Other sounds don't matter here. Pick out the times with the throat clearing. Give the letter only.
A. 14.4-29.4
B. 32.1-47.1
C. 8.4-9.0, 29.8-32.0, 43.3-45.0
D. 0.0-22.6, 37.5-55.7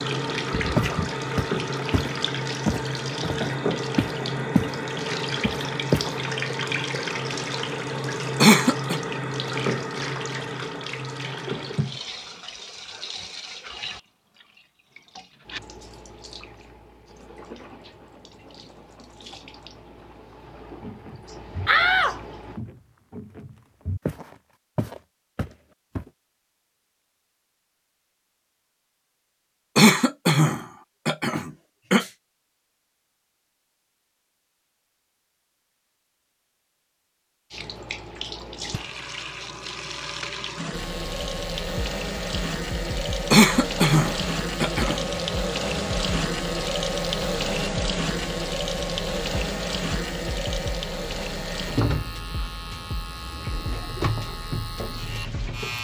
C.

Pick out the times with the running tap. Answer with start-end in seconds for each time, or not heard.
0.0-22.6, 37.5-55.7.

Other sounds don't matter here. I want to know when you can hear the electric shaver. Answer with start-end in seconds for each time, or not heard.
40.7-55.7.